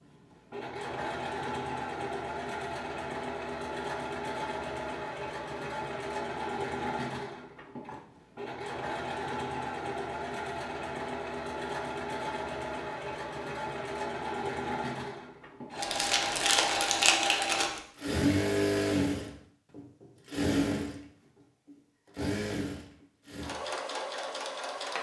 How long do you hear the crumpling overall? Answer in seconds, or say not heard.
2 s.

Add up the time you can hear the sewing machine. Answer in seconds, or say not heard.
25 s.